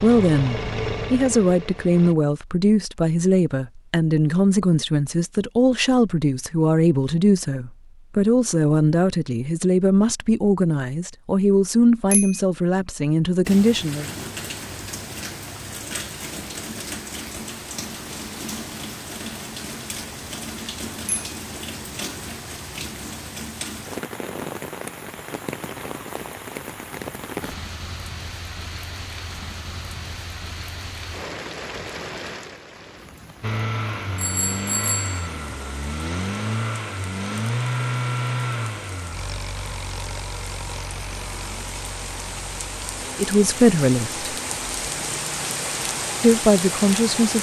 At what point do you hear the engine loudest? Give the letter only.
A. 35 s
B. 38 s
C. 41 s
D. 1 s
B.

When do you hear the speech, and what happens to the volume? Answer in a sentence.
You can hear the speech from 0.0 to 14.1 s, at a steady volume; briefly from 43.1 to 44.2 s; and briefly from 46.2 to 47.3 s.